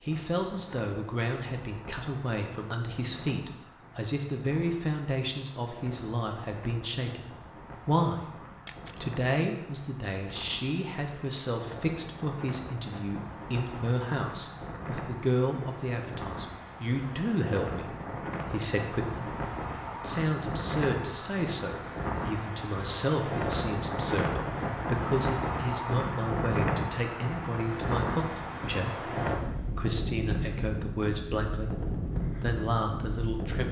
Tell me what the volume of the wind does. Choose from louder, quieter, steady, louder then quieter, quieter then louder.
louder.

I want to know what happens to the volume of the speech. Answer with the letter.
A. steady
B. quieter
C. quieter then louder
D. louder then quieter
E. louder
A.